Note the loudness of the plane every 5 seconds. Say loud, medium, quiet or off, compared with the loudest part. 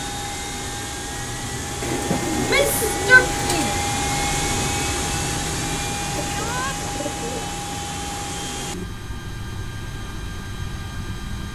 loud, loud, medium.